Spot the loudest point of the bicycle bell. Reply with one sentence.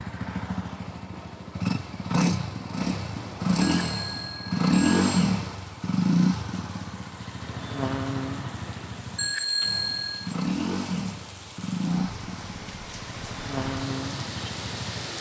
The loudest moment of the bicycle bell is at 10 seconds.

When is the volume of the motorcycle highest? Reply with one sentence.
The volume of the motorcycle peaks at 5 seconds.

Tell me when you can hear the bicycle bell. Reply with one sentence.
The bicycle bell can be heard from 3.6 to 5.2 s and from 9.2 to 10.3 s.